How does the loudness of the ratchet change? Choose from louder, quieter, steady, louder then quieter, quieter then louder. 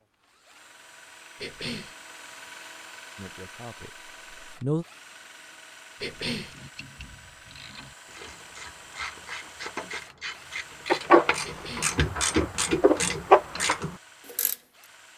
louder.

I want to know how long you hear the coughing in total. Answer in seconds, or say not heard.
2 s.